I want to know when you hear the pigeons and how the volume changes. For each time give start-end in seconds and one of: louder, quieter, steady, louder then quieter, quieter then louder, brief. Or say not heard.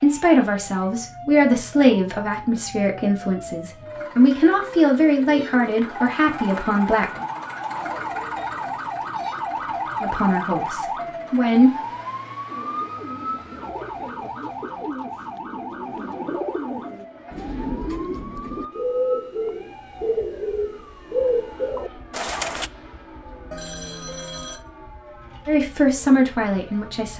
12.4-22.7 louder.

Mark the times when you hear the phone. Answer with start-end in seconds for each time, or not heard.
23.5-24.6.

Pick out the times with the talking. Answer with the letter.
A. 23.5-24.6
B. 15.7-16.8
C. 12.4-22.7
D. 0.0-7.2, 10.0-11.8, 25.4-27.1
D.